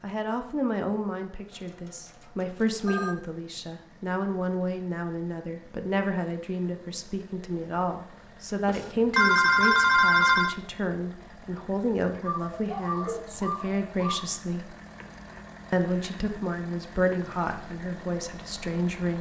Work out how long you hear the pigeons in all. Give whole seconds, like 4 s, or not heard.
2 s.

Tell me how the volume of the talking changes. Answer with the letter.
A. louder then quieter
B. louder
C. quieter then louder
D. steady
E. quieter
D.